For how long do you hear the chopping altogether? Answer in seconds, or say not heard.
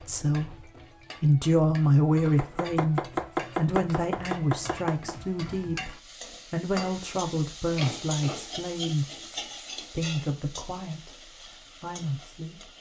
3 s.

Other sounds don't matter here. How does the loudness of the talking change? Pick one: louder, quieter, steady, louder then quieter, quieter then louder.
quieter.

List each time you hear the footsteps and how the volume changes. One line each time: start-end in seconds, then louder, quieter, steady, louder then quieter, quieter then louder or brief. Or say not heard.
not heard.